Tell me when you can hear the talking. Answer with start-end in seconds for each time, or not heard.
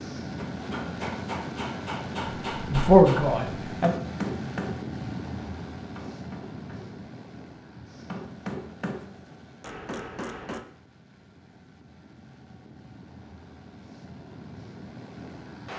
2.6-4.0.